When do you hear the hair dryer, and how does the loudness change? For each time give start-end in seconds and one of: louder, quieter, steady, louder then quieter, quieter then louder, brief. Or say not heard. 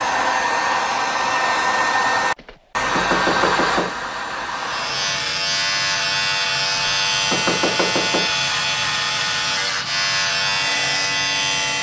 0.0-11.7 quieter.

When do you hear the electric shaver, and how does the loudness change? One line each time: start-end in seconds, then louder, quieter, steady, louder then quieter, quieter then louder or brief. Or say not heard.
4.5-11.7 steady.